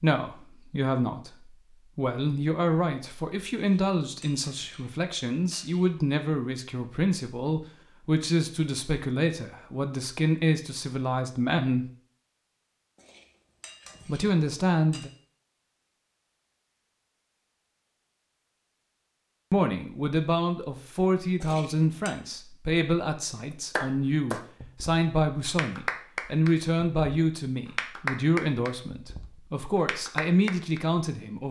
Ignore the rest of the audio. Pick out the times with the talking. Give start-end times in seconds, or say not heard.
0.0-11.9, 14.1-15.1, 19.5-31.4.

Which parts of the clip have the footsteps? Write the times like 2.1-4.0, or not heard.
not heard.